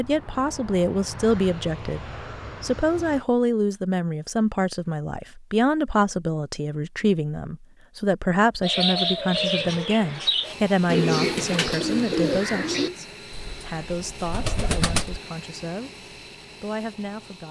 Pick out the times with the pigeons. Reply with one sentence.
You can hear the pigeons from 8.6 to 15.2 s.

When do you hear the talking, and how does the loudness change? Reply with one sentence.
You can hear the talking from 0.0 to 15.9 s, getting quieter; and briefly from 16.6 to 17.4 s.